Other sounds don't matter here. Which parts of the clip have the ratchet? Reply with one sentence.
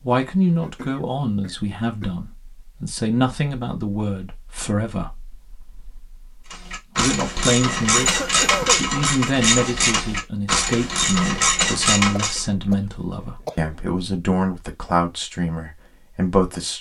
The ratchet can be heard from 6.5 to 12.4 s.